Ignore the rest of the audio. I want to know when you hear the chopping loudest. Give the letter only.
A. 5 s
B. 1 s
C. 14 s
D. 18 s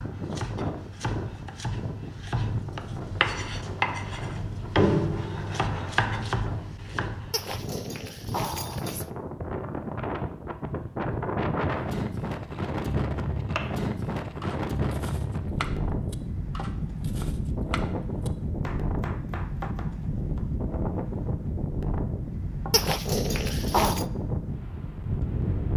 A.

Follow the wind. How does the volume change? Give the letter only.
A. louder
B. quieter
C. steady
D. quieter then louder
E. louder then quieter
A.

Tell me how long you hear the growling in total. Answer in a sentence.
You can hear the growling for 3 seconds altogether.